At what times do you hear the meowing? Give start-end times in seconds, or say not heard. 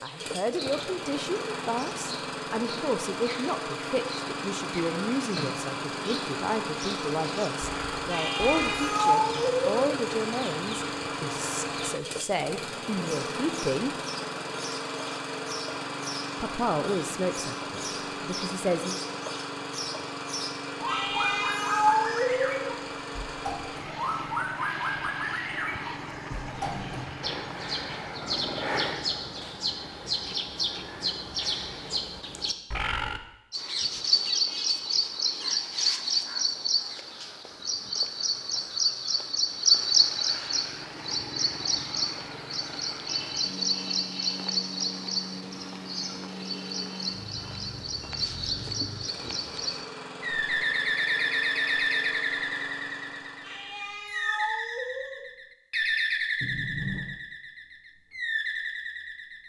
8.1-9.7, 20.9-22.6, 53.4-55.2.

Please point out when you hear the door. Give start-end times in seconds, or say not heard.
26.3-27.2, 56.4-57.0.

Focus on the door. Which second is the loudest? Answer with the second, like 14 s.
57 s.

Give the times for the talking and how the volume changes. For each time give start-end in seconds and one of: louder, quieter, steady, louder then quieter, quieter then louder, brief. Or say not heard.
0.0-13.9 steady
16.4-19.0 brief.